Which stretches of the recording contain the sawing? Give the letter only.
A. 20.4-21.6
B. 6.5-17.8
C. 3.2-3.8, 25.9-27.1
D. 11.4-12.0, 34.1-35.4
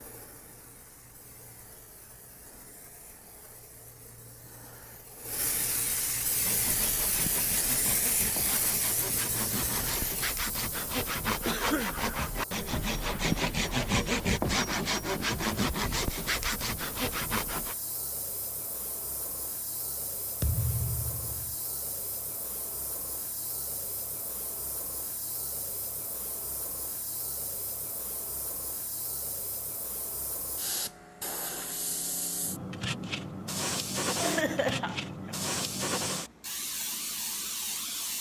B.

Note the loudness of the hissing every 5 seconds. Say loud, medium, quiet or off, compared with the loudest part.
quiet, loud, medium, medium, medium, medium, loud, loud.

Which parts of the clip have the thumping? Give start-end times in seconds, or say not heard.
20.4-21.6.